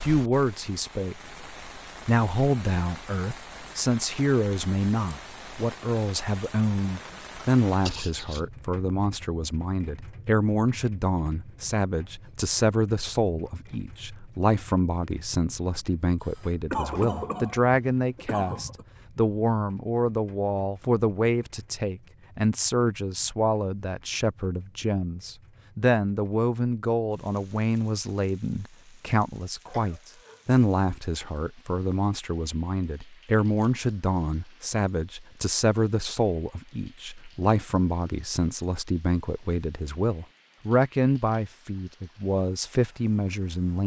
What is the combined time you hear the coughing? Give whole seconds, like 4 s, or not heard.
5 s.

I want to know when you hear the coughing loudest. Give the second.
17 s.